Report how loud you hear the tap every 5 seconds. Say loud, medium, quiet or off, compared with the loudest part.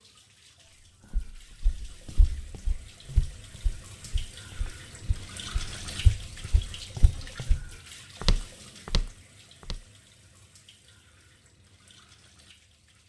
medium, loud, quiet.